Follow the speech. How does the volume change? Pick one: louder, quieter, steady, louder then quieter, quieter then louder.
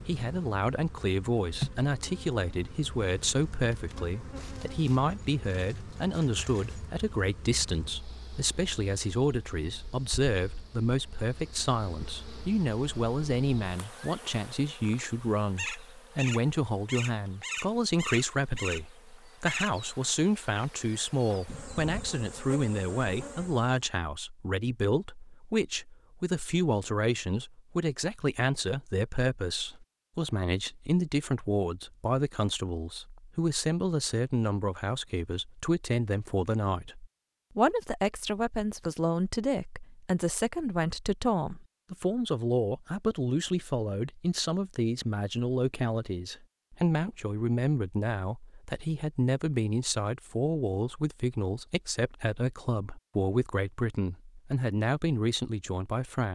steady.